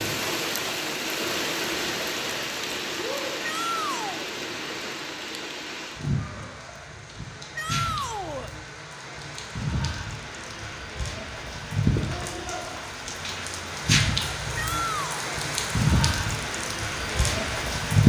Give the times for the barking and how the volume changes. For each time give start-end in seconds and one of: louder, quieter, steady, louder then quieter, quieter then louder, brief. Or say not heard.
not heard.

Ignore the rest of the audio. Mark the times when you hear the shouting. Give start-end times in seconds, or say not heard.
3.4-4.3, 7.5-8.5, 14.6-15.2.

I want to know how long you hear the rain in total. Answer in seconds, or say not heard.
18 s.